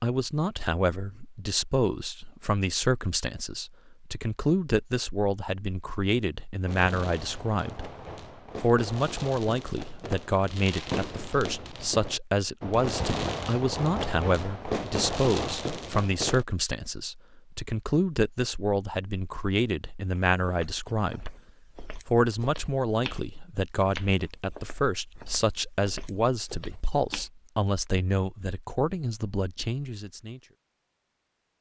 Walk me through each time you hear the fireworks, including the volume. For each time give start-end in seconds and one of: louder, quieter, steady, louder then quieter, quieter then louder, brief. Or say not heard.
6.7-16.4 louder.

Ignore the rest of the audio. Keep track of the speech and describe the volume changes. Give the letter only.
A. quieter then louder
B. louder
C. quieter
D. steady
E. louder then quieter
D.